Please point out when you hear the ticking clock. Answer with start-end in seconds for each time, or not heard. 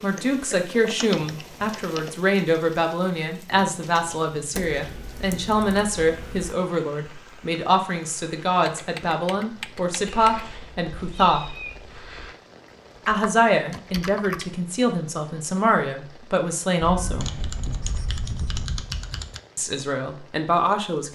not heard.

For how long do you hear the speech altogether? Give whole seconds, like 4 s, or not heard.
17 s.